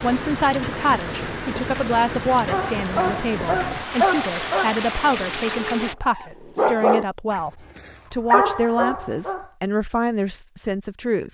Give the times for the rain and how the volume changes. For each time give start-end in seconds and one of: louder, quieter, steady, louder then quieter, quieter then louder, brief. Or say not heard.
0.0-6.0 steady.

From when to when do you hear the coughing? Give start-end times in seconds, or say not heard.
not heard.